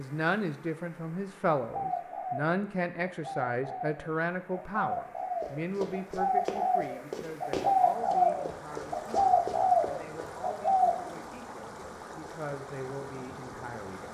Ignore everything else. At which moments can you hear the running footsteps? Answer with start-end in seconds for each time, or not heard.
5.4-10.3.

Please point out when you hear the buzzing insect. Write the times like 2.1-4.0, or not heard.
not heard.